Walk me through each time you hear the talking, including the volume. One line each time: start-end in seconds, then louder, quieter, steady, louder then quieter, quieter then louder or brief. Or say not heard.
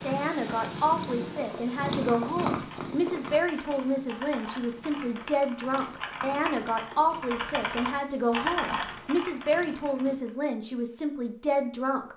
0.0-12.1 steady.